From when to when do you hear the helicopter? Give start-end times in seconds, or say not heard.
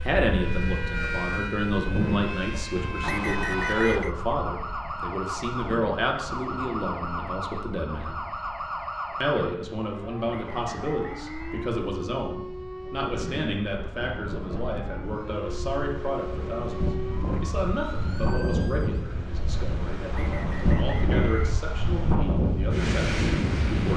not heard.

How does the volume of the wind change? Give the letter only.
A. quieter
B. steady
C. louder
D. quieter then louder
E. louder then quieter
D.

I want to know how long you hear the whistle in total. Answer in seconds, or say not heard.
5 s.